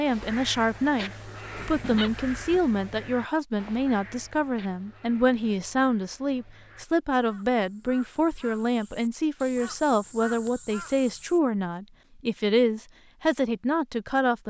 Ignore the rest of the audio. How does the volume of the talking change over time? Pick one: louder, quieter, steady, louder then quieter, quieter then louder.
steady.